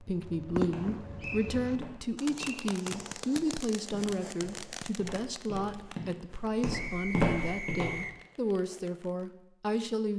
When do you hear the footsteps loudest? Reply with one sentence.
The volume of the footsteps peaks at 7 seconds.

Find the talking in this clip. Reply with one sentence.
The talking can be heard from 0.0 to 10.1 s.